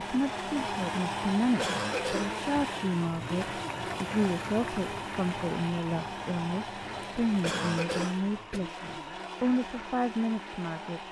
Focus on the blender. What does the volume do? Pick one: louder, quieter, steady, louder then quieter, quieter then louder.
quieter.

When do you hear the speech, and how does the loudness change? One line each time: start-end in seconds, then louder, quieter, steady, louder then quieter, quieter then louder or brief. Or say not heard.
0.0-11.0 steady.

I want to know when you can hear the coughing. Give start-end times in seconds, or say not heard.
1.6-2.4, 7.4-8.6.